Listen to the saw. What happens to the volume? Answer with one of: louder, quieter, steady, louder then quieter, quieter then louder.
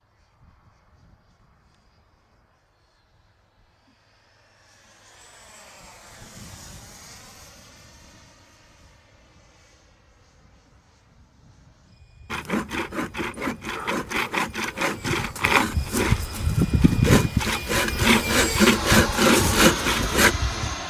louder.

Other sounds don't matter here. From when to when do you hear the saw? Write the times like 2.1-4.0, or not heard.
12.3-20.4.